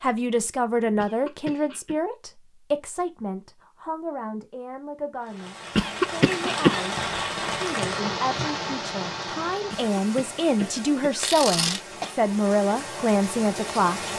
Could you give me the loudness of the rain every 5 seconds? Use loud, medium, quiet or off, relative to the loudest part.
off, loud, medium.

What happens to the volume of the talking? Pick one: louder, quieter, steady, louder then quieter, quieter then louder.
quieter then louder.